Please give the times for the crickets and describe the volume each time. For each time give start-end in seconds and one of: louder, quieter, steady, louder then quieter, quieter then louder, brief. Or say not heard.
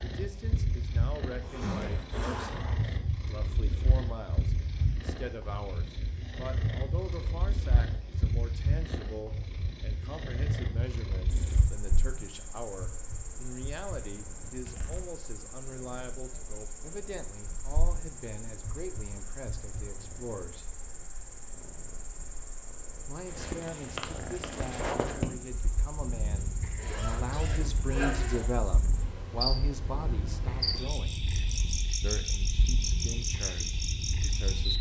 11.3-34.7 louder.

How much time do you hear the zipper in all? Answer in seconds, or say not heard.
4 s.